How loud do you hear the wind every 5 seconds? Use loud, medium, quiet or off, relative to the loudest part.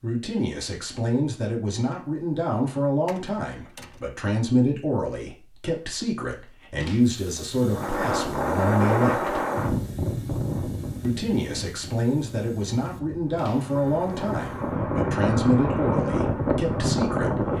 off, loud, medium, loud.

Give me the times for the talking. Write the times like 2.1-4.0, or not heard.
0.0-9.4, 11.0-17.5.